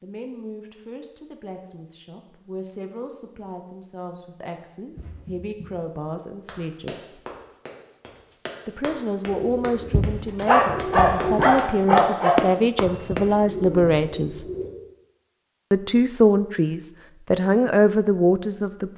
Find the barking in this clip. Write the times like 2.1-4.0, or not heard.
10.4-12.3.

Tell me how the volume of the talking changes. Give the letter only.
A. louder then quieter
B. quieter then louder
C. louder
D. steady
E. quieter
C.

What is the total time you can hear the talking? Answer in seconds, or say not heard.
16 s.